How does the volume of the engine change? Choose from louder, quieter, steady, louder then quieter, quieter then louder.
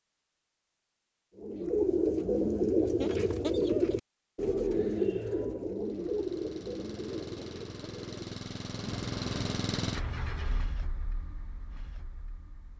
louder then quieter.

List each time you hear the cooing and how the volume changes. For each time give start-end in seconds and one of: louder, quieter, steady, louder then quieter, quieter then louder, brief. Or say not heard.
1.4-10.6 quieter.